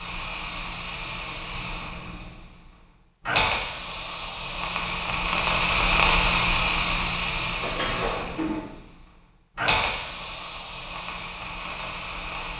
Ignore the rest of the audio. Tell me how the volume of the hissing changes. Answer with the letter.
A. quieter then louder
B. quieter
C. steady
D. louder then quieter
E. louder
D.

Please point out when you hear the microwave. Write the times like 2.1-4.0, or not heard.
not heard.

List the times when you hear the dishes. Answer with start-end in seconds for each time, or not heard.
7.6-8.8.